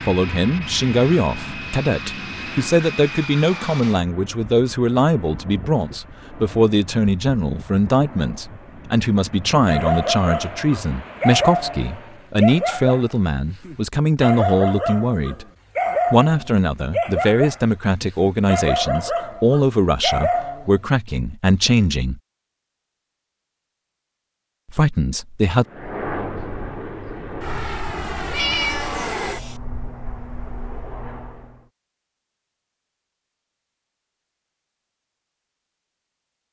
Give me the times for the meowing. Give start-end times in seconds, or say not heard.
28.3-29.6.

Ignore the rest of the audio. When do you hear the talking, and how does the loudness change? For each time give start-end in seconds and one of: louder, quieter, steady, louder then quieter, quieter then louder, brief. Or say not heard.
0.1-15.4 steady
16.1-22.2 steady
24.6-25.6 brief.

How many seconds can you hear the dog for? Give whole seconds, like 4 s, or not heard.
11 s.